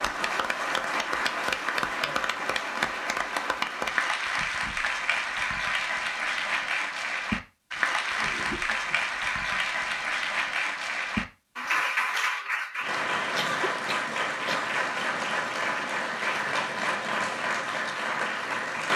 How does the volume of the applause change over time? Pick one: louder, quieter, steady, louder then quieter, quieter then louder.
steady.